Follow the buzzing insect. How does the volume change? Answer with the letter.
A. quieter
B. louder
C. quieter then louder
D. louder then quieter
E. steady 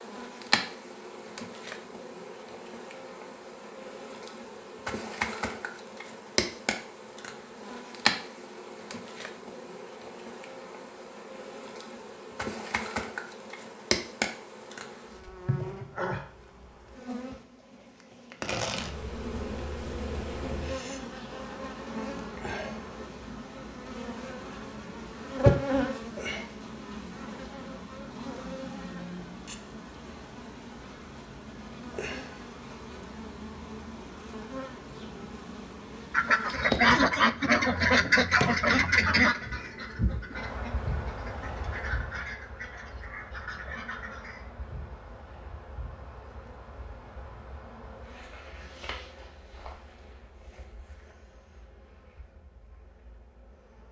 A.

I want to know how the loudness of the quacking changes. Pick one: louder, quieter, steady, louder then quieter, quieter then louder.
quieter.